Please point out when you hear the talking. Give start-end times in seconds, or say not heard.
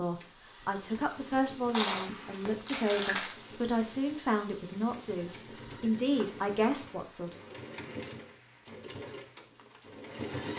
0.0-7.3.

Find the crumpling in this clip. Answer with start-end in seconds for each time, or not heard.
1.7-3.4, 5.5-6.8.